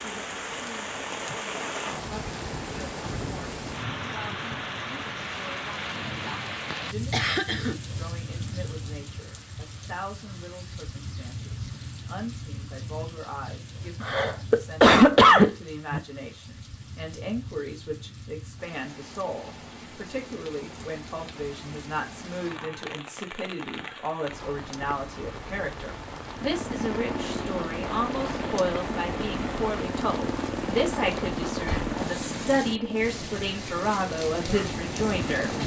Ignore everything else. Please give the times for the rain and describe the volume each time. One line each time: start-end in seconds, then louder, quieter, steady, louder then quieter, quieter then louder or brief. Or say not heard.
0.0-35.6 quieter then louder.